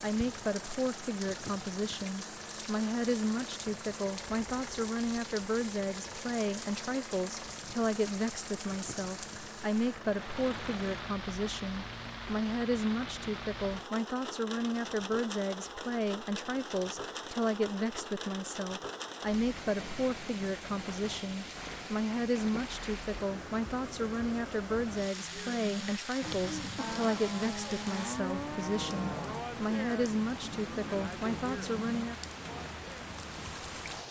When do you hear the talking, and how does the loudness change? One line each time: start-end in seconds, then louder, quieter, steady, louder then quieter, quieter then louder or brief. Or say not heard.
0.0-32.1 steady.